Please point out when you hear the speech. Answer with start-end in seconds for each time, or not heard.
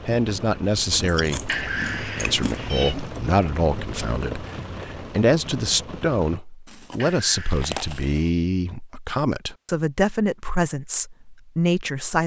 0.1-12.2.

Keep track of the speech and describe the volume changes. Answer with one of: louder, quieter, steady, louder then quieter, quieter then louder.
steady.